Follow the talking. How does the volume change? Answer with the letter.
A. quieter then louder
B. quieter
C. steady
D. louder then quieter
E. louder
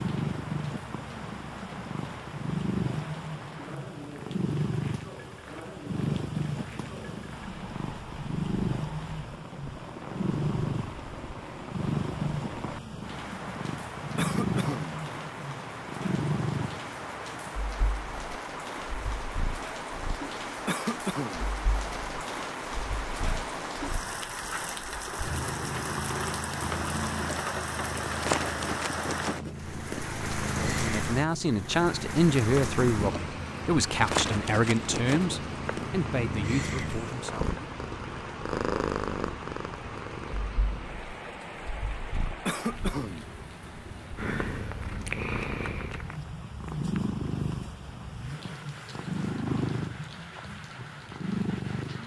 B.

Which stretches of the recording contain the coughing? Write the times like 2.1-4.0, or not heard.
14.2-14.9, 20.6-21.4, 42.5-43.2.